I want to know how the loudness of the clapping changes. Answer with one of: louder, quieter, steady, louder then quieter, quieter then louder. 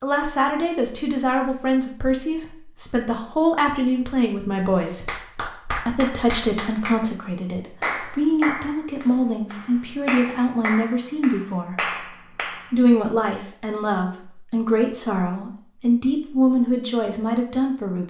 steady.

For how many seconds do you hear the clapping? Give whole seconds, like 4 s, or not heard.
8 s.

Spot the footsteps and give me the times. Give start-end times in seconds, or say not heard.
not heard.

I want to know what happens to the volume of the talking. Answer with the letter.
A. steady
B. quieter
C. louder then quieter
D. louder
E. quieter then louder
A.